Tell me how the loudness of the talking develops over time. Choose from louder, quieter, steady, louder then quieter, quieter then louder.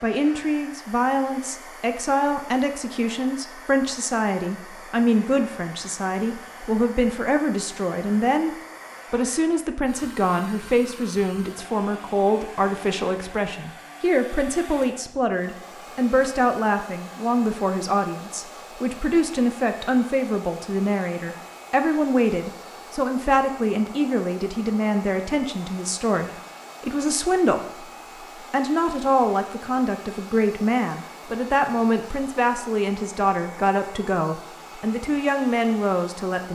steady.